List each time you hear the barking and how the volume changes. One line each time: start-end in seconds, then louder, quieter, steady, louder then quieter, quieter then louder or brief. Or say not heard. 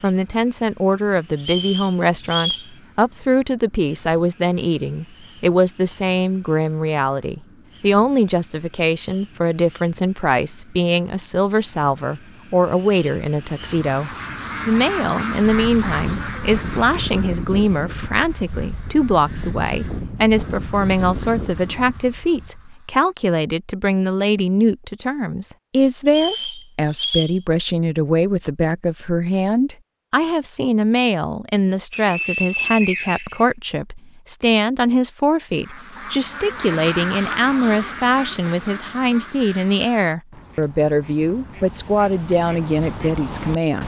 not heard.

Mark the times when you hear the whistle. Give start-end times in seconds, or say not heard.
1.4-2.7, 26.1-27.4, 31.9-33.5.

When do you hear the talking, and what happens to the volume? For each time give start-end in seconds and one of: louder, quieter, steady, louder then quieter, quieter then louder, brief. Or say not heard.
0.0-43.8 steady.